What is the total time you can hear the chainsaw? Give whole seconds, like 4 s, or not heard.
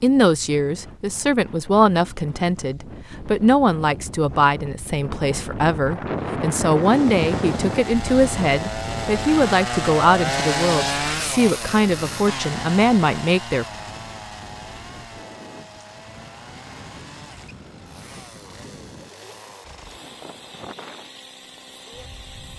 16 s.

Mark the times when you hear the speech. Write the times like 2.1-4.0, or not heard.
0.0-13.7.